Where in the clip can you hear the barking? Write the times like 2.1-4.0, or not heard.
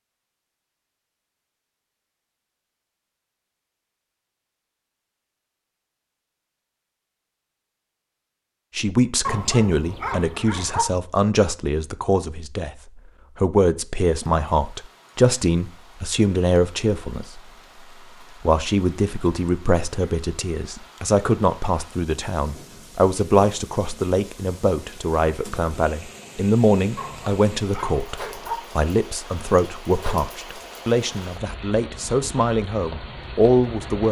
9.2-10.8, 26.9-28.6.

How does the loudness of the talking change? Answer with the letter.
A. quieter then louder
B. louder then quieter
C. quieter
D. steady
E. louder
D.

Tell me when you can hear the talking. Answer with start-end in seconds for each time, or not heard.
8.8-12.8, 13.3-17.4, 18.4-34.0.